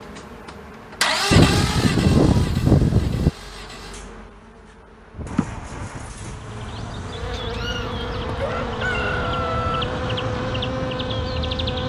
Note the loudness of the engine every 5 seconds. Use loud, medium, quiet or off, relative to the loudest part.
loud, quiet, off.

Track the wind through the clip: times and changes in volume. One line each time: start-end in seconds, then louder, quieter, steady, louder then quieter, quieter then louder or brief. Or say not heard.
5.1-11.8 louder.